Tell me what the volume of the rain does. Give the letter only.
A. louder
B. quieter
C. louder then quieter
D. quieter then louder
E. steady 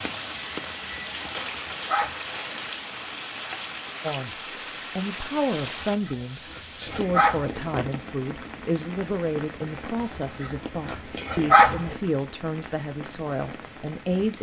B.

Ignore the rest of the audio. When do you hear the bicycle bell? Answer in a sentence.
The bicycle bell can be heard from 0.3 to 1.2 s.